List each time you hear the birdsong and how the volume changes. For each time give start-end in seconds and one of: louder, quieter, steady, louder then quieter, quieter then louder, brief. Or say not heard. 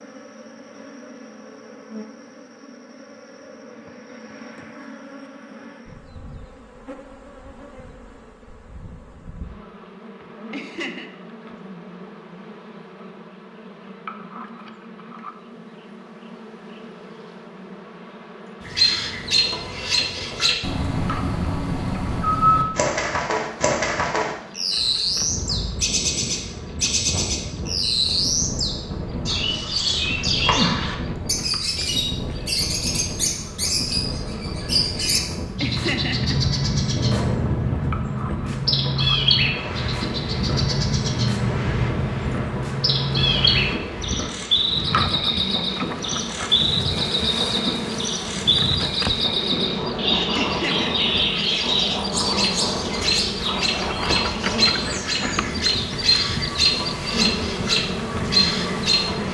18.6-59.2 steady.